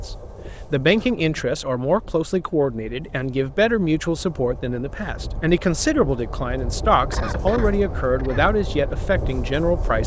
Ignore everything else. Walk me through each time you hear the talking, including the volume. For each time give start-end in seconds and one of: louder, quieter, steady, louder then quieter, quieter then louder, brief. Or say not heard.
0.1-10.0 steady.